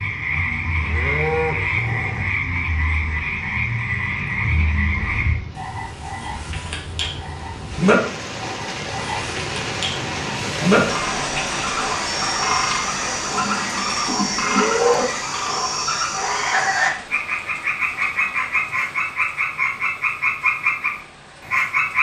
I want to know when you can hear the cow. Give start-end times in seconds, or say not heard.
0.8-2.2, 13.3-15.1.